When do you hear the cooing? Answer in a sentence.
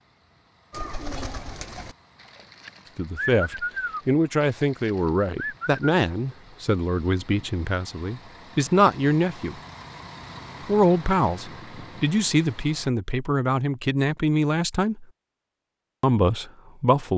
You can hear the cooing from 0.7 to 5.8 s.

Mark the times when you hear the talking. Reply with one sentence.
You can hear the talking from 3.0 to 9.6 s, from 10.7 to 15.1 s and from 16.0 to 17.1 s.